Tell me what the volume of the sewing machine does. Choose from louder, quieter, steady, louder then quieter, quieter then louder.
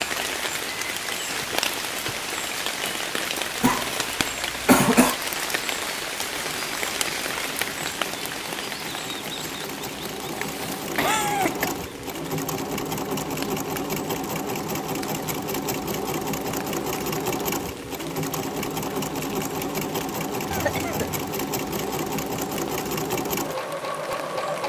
louder.